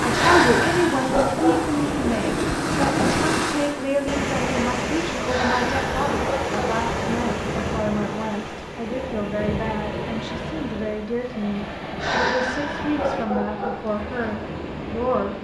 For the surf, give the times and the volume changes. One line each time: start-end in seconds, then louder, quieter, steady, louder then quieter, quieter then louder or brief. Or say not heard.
0.0-15.4 quieter.